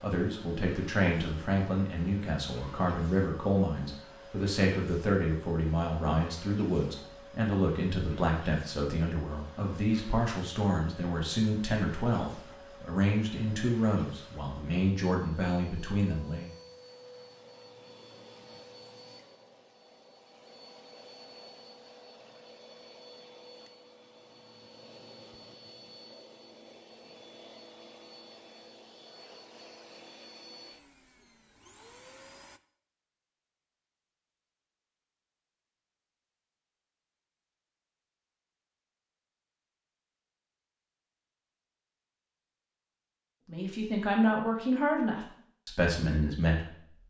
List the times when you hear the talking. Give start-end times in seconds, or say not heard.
0.0-16.5, 43.5-46.9.